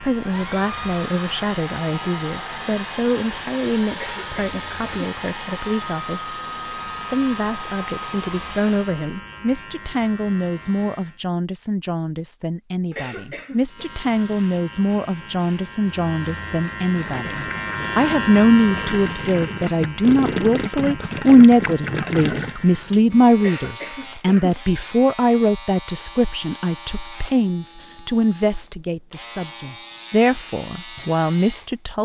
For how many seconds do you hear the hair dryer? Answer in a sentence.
The hair dryer can be heard for 9 seconds in total.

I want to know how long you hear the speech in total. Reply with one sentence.
The speech can be heard for 31 seconds in total.